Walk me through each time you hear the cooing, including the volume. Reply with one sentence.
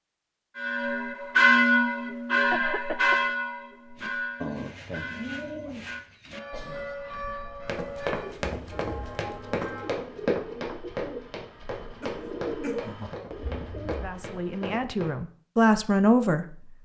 The cooing can be heard from 4.0 to 14.8 s, getting quieter then louder.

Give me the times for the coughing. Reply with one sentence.
The coughing can be heard from 2.5 to 3.4 s, from 6.1 to 7.0 s and from 12.0 to 12.9 s.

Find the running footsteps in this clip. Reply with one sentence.
The running footsteps can be heard from 7.7 to 15.1 s.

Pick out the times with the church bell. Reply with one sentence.
The church bell can be heard from 0.6 to 10.1 s.